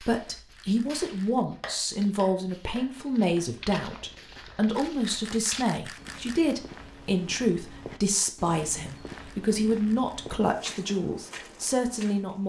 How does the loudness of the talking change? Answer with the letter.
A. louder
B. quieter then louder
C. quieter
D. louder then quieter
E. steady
E.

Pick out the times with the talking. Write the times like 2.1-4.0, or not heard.
0.0-12.4.